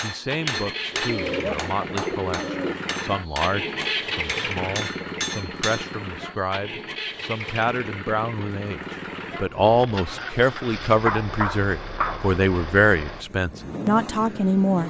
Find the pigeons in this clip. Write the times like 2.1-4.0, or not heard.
0.9-2.8.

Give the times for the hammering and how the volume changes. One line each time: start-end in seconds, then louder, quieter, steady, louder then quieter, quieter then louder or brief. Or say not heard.
0.0-6.0 quieter then louder.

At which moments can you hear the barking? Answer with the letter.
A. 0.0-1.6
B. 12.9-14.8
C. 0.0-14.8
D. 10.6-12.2
D.